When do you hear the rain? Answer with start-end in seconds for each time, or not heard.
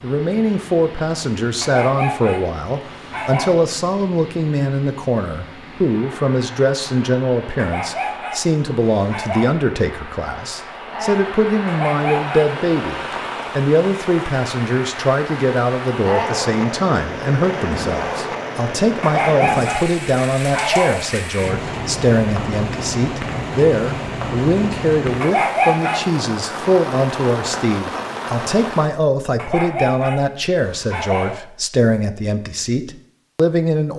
0.0-28.9.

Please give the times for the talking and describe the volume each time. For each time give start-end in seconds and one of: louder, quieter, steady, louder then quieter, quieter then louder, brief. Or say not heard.
0.0-33.9 steady.